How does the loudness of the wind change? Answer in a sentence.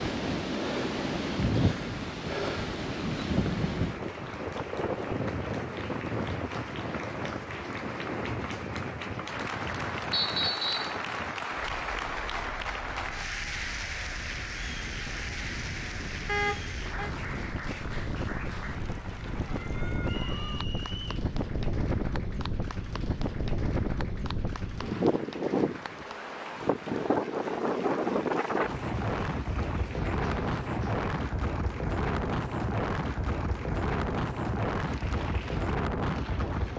The volume of the wind goes down, then up.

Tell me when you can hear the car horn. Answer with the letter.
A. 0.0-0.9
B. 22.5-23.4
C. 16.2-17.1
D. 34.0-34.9
C.